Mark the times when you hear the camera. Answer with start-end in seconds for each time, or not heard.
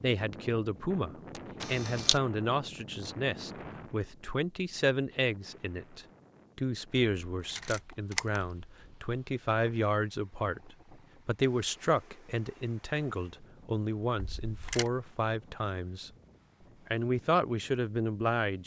1.4-2.2, 7.5-8.4, 14.2-14.9.